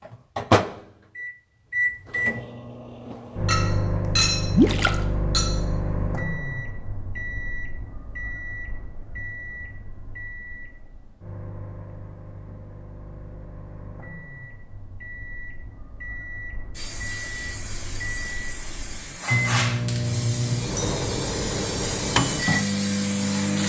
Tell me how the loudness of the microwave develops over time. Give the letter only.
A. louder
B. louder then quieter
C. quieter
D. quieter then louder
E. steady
D.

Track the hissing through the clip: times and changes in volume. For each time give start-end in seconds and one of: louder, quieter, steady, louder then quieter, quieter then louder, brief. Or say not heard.
16.8-23.6 louder.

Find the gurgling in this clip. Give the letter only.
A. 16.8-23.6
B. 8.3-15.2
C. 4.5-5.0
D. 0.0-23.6
C.